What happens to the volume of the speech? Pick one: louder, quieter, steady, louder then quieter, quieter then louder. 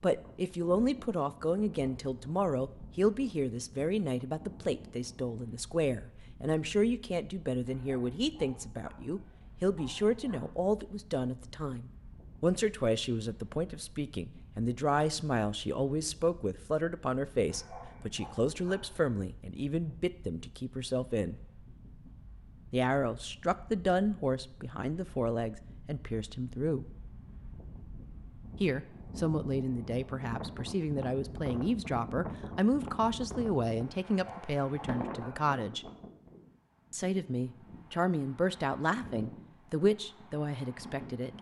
steady.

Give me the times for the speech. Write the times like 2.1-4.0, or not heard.
0.0-21.4, 22.7-26.9, 28.6-35.9, 36.9-41.3.